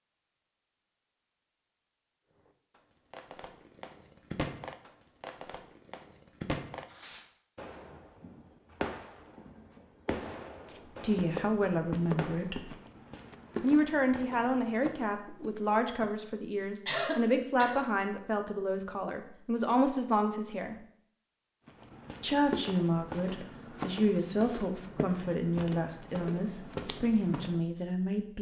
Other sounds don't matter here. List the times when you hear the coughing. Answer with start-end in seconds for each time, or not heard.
16.9-17.9.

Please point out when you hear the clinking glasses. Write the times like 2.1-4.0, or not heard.
not heard.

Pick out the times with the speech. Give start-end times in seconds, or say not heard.
11.0-12.8, 13.6-20.8, 22.2-28.3.